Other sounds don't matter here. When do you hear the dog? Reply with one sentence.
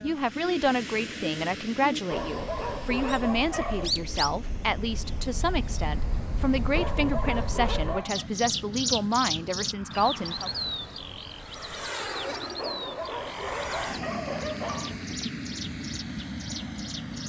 You can hear the dog from 2.1 to 3.9 s, from 6.8 to 8.2 s and from 12.6 to 15.2 s.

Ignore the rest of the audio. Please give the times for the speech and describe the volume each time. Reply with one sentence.
You can hear the speech from 0.0 to 10.5 s, at a steady volume.